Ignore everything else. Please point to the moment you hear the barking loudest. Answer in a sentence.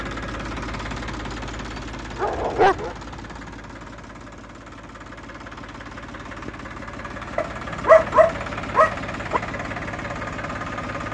The loudest moment of the barking is at 8 seconds.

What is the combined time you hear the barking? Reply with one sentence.
You can hear the barking for 3 seconds altogether.